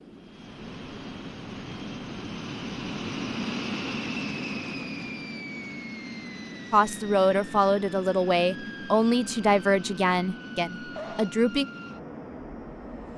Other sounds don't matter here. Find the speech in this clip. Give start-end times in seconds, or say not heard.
6.7-11.7.